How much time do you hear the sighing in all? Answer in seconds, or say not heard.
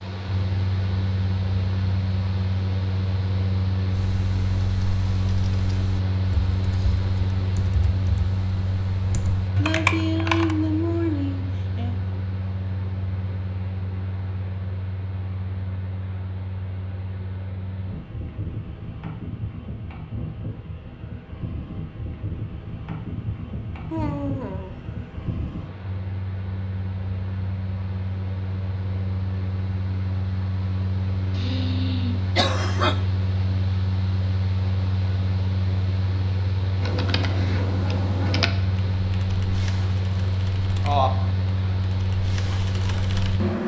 4 s.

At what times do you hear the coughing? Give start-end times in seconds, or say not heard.
32.4-33.0.